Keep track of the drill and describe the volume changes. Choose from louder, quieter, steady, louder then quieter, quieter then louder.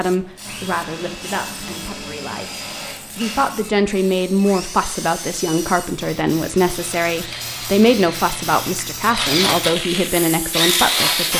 louder.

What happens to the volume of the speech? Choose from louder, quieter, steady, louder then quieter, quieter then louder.
louder.